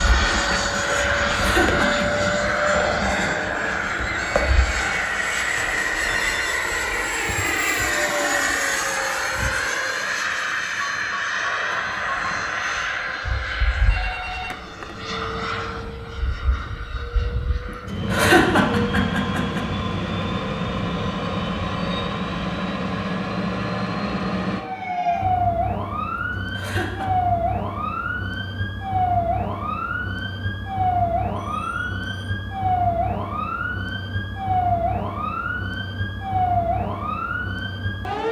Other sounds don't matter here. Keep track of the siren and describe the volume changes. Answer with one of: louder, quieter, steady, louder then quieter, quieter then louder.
steady.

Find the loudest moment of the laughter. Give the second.
18 s.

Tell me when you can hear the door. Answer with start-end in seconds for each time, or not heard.
not heard.